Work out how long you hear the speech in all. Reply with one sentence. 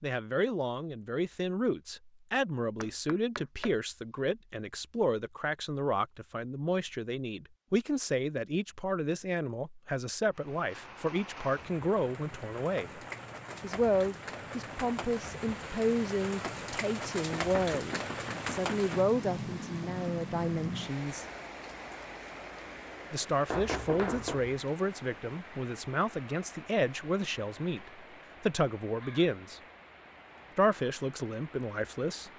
The speech can be heard for 29 seconds in total.